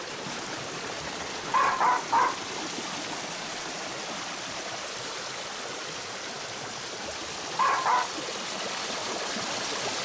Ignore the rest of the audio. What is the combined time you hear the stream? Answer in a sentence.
You can hear the stream for 10 seconds altogether.